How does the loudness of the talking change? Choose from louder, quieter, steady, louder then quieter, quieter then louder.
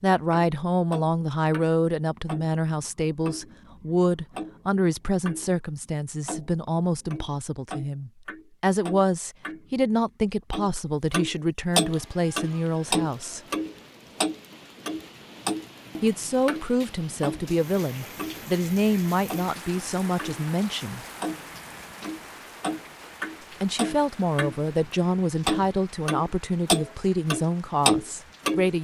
steady.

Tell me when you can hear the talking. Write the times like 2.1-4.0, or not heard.
0.0-13.4, 16.0-21.1, 23.6-28.7.